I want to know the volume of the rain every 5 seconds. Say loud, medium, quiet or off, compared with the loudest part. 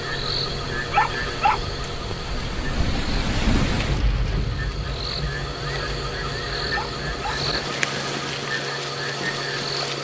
loud, medium.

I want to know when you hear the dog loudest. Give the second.
1 s.